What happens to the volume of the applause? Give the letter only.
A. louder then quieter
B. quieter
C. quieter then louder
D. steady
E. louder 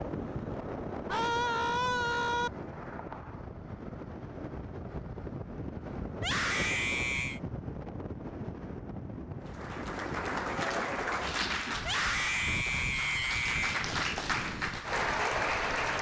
C.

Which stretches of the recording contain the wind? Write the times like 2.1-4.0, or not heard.
0.0-15.9.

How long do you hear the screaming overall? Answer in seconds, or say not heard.
5 s.